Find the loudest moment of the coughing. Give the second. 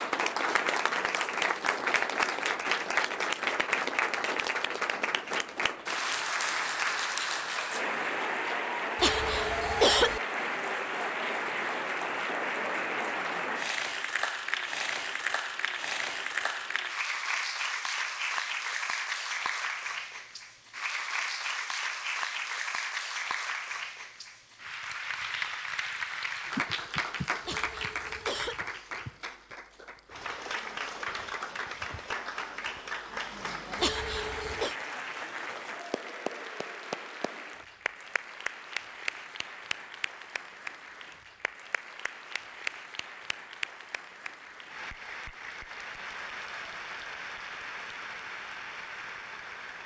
10 s.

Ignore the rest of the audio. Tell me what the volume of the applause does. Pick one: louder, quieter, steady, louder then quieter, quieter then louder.
quieter.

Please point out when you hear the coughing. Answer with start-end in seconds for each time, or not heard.
8.9-10.2, 27.4-28.6, 33.8-34.8.